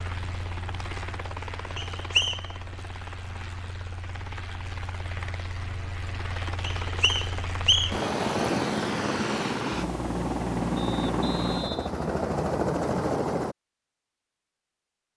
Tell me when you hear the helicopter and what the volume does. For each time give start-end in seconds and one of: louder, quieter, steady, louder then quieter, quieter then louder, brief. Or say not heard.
0.0-13.6 louder.